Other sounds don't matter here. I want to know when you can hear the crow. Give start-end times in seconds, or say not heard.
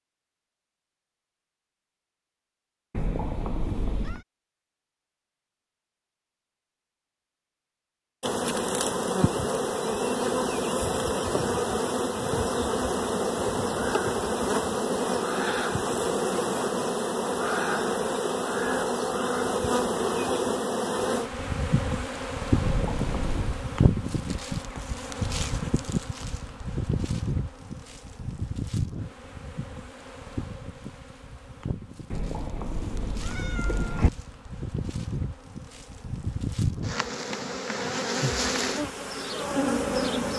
not heard.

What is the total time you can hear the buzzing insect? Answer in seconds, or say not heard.
32 s.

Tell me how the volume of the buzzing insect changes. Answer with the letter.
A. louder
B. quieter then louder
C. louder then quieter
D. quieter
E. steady
B.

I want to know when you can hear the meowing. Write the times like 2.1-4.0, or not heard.
2.9-4.2, 22.6-23.6, 32.1-34.1.